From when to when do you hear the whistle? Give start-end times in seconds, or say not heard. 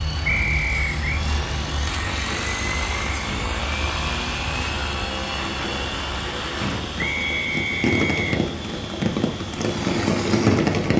0.2-1.2, 7.0-8.3.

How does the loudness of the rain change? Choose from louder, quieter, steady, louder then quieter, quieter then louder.
louder.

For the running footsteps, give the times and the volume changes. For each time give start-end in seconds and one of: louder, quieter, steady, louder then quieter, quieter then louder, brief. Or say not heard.
not heard.